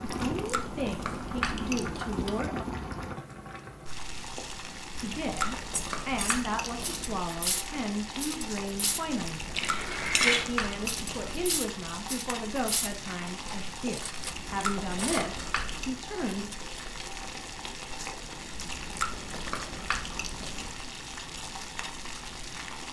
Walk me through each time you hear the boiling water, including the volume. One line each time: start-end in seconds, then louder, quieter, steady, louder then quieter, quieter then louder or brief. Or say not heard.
0.0-22.8 steady.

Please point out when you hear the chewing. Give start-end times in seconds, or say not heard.
0.1-2.3, 4.9-7.2, 9.2-11.6, 14.2-15.9, 18.5-20.7.